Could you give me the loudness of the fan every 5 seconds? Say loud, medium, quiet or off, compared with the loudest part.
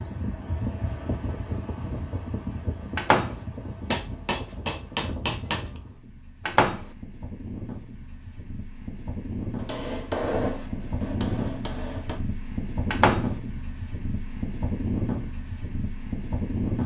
medium, medium, loud, loud.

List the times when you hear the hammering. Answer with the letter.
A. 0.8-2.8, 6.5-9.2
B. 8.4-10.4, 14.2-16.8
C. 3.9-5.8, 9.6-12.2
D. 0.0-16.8
C.